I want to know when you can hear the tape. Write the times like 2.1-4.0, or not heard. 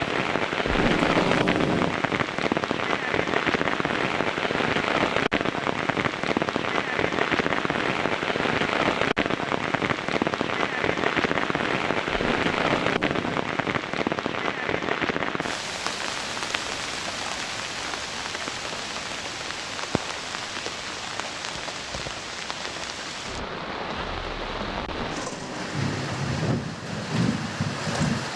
0.7-2.0, 12.1-13.4, 24.8-26.1.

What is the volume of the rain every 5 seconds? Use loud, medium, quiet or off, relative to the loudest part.
loud, loud, loud, medium, medium, loud.